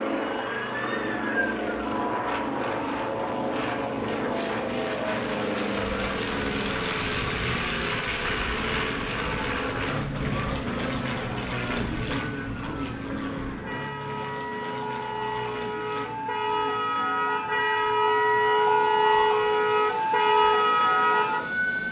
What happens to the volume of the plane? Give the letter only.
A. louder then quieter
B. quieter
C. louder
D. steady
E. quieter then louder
B.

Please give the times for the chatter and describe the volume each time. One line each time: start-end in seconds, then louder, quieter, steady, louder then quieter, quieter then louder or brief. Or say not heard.
not heard.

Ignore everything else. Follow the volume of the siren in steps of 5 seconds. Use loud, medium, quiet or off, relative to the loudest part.
quiet, quiet, quiet, loud, loud.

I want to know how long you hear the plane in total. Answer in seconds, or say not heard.
22 s.